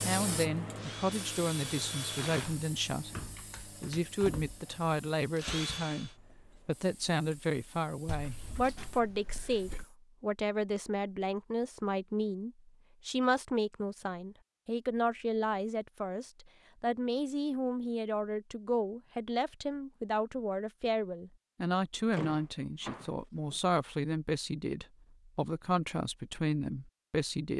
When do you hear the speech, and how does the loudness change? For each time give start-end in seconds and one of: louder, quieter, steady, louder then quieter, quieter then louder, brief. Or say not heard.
0.0-27.5 steady.